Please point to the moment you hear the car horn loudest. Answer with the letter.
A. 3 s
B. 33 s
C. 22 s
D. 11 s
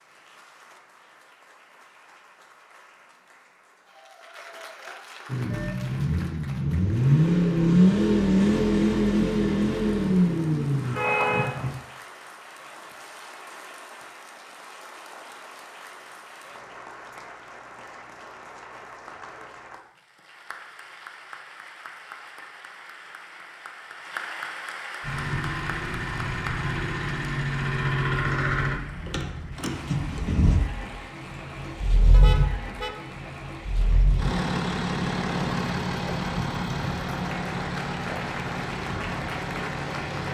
D.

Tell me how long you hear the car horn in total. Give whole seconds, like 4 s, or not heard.
2 s.